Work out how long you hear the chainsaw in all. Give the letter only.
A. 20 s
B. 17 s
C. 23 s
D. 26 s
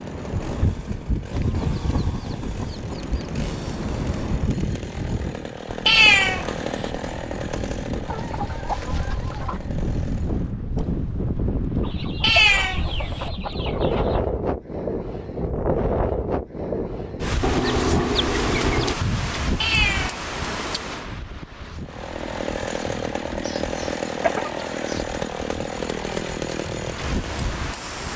B.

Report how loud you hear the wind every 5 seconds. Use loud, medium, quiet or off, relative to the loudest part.
loud, medium, loud, loud, medium, medium.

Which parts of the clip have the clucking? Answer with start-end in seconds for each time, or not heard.
1.3-3.1, 8.1-9.6, 11.8-14.2, 17.4-18.9, 23.4-25.1.